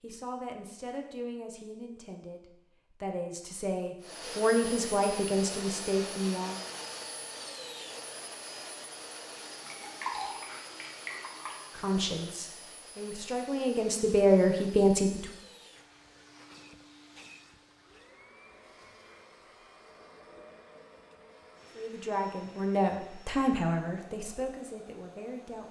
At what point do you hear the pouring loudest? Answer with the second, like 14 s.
10 s.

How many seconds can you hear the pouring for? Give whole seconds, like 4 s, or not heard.
2 s.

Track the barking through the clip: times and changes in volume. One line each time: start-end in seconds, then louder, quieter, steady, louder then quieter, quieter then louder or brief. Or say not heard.
not heard.